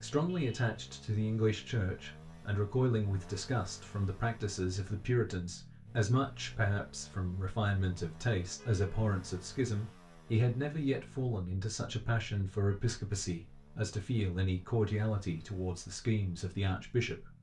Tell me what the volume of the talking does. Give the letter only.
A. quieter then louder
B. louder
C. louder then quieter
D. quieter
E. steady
E.